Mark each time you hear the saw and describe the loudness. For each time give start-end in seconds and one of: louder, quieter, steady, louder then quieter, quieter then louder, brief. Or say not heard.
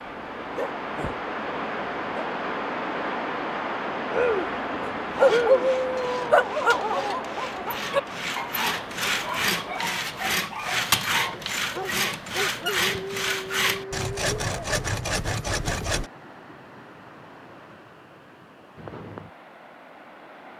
5.0-16.1 louder.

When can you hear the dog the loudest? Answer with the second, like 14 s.
5 s.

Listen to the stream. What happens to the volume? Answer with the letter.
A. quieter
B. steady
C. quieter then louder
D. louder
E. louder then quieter
A.